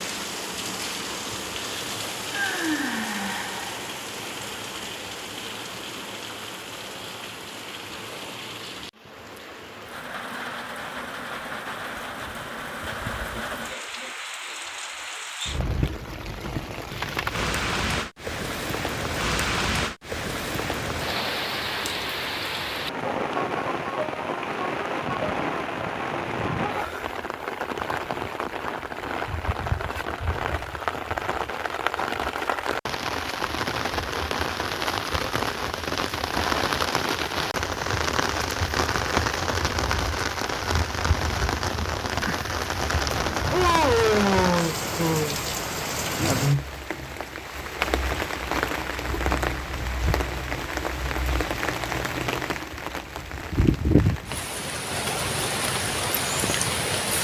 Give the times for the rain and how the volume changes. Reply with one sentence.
You can hear the rain from 0.0 to 57.1 s, getting louder.